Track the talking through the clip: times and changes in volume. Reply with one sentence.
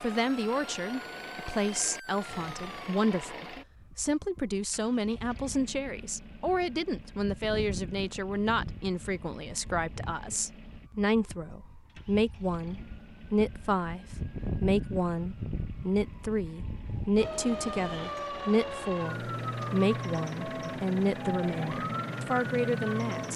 You can hear the talking from 0.0 to 23.3 s, at a steady volume.